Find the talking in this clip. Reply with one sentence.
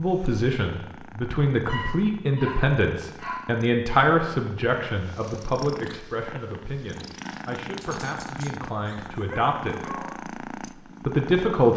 The talking can be heard from 0.0 to 10.1 s and from 10.8 to 11.7 s.